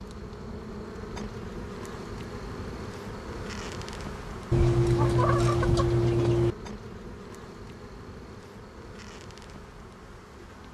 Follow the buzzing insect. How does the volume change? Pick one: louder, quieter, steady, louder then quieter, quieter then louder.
quieter.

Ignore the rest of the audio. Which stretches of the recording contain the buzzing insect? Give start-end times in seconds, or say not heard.
0.0-10.6.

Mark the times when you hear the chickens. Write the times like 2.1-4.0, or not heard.
4.5-6.5.